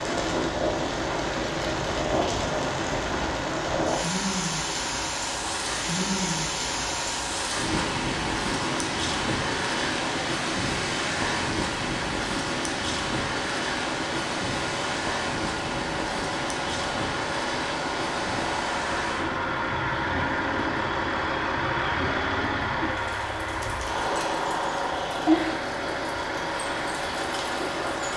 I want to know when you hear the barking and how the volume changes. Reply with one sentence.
You can't hear the barking here.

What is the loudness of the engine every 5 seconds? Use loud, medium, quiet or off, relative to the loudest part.
medium, medium, medium, loud, loud, loud.